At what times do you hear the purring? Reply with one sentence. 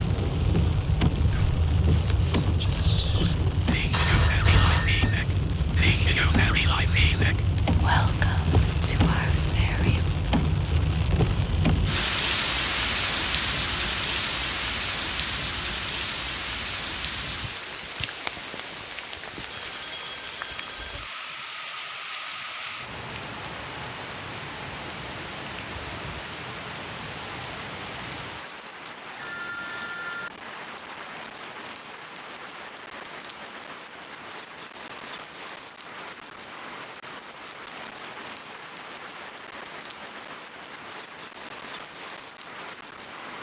The purring can't be heard in this clip.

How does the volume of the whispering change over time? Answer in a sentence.
The volume of the whispering goes up.